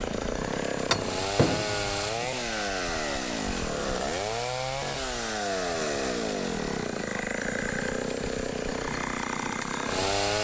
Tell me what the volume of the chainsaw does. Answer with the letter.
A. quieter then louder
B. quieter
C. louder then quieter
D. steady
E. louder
D.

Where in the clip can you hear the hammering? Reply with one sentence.
You can hear the hammering from 0.9 to 2.1 s.